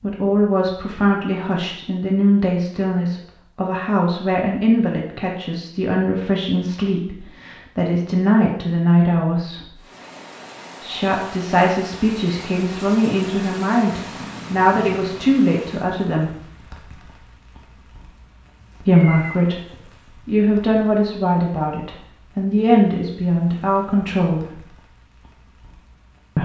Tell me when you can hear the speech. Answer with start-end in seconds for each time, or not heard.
0.0-9.8, 10.8-16.4, 18.8-24.6.